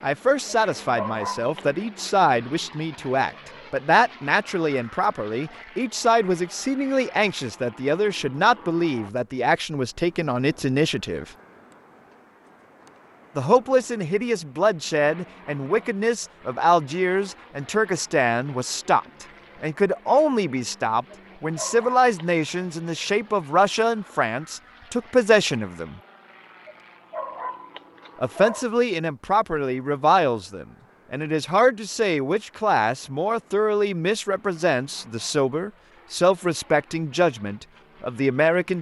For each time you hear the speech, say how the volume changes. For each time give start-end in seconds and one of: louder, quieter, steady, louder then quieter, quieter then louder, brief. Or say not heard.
0.0-11.2 steady
13.3-26.0 steady
28.2-38.7 steady.